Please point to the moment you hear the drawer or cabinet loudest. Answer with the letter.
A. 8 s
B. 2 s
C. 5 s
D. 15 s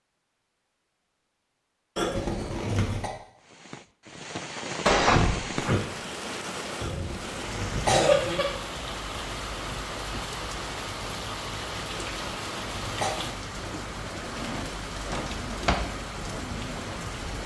C.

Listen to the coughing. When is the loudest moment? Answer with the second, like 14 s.
8 s.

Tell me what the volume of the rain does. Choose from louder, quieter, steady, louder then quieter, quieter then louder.
steady.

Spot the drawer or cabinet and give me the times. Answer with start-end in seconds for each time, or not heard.
4.8-5.8, 14.2-15.8.